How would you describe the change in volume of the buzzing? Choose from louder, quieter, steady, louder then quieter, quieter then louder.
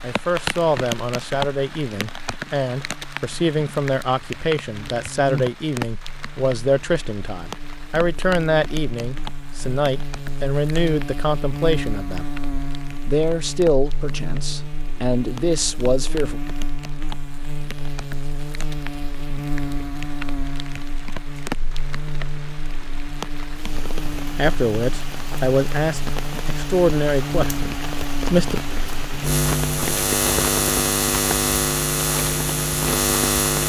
louder.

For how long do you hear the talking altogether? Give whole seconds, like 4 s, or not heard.
20 s.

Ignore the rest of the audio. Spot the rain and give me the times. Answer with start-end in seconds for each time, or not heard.
0.0-33.6.